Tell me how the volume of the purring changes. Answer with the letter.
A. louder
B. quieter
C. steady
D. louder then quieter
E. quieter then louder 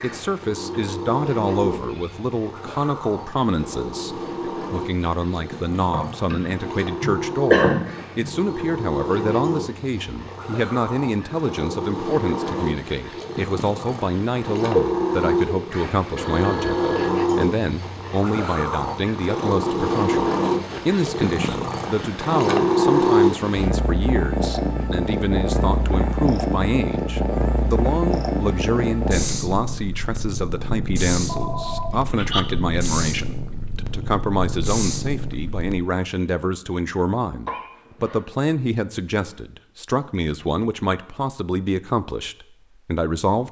D.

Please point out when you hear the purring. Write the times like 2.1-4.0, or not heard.
0.0-35.9.